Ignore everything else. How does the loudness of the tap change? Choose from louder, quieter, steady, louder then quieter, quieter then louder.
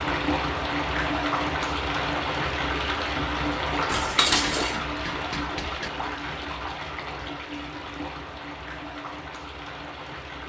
quieter.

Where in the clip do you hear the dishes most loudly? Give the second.
4 s.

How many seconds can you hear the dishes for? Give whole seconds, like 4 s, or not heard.
2 s.